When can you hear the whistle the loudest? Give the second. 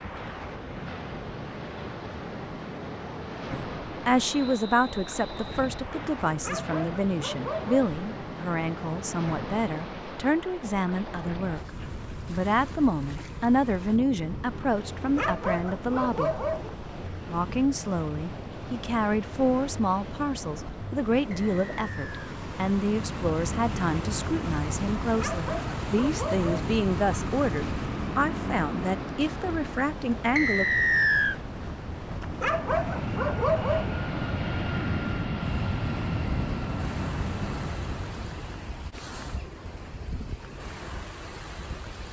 31 s.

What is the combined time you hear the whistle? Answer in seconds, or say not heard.
3 s.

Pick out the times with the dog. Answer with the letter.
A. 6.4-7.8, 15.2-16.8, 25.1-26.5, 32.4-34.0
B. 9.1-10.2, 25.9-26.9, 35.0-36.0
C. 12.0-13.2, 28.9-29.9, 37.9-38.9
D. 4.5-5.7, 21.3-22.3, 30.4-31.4
A.